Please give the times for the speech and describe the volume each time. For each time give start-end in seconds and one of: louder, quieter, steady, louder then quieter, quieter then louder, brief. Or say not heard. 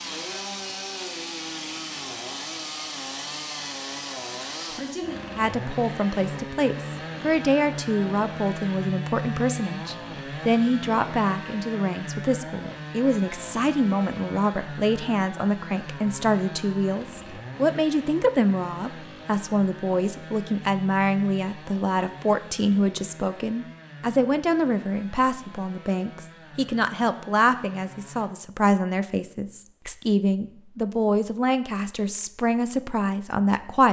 5.3-33.8 steady.